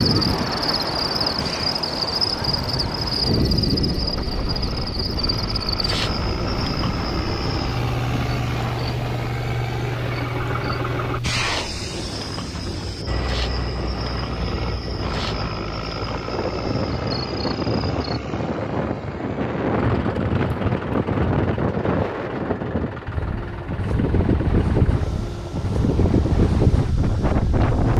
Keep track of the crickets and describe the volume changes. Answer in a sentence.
The loudness of the crickets goes down.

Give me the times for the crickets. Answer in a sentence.
The crickets can be heard from 0.0 to 18.2 s.